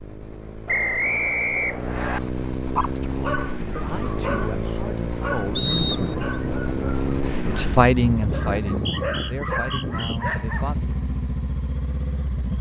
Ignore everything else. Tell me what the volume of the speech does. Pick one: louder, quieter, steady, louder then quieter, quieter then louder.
louder then quieter.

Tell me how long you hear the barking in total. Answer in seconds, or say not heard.
8 s.